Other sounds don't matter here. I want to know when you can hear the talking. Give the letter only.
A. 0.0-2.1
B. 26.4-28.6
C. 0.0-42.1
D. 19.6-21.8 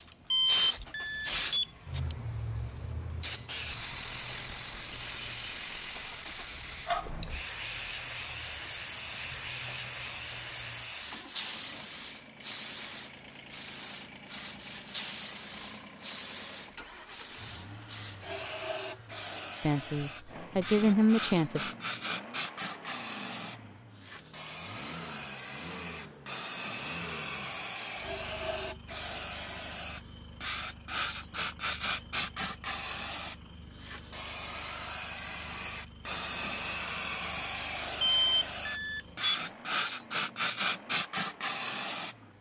D.